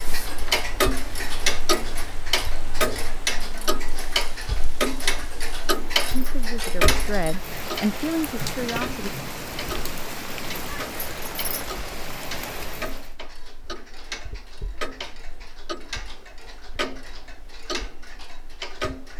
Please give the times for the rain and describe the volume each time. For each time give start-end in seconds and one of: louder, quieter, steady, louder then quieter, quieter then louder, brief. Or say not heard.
0.1-13.2 louder.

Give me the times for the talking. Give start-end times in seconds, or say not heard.
6.1-9.1.